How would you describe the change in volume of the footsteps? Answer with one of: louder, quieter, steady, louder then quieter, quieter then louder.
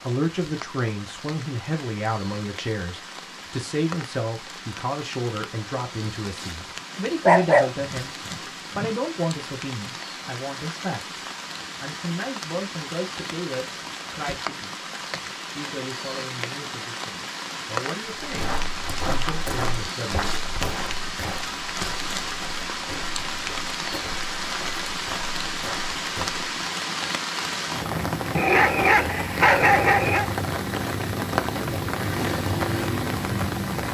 quieter.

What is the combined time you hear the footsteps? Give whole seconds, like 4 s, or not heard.
8 s.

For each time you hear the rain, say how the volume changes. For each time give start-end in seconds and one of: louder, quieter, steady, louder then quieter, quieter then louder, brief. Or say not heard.
0.0-33.8 louder.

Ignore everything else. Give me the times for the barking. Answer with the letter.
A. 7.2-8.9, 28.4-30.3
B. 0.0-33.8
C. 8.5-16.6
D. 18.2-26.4
A.